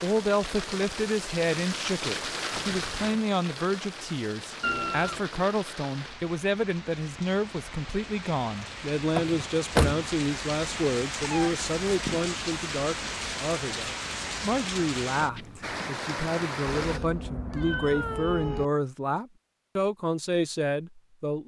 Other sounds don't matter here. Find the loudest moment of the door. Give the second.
10 s.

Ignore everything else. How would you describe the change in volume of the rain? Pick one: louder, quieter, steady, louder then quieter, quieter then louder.
quieter then louder.